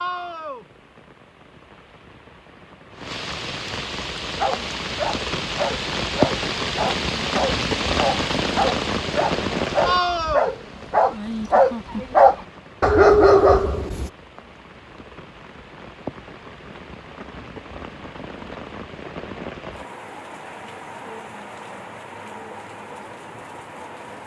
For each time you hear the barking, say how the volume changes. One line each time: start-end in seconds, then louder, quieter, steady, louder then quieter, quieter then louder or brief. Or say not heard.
4.3-14.1 louder.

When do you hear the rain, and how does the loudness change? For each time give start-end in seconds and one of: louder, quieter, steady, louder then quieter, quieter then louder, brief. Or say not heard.
0.0-24.2 louder then quieter.